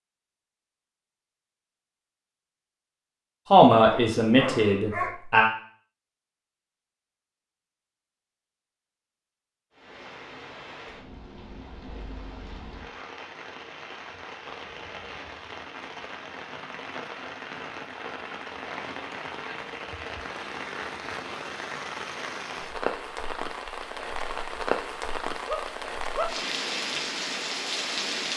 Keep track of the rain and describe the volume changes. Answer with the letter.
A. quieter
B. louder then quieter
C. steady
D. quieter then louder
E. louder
E.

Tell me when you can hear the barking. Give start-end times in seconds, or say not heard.
3.8-5.2, 25.4-26.4.